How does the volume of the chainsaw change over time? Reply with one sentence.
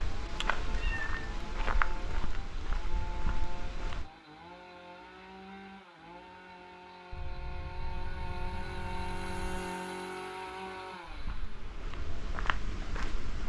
The loudness of the chainsaw goes up, then down.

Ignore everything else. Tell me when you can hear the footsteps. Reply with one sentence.
The footsteps can be heard from 0.0 to 4.1 s and from 11.1 to 13.4 s.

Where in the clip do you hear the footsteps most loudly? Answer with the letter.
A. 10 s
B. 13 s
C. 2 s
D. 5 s
C.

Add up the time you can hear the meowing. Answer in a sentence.
You can hear the meowing for 3 seconds altogether.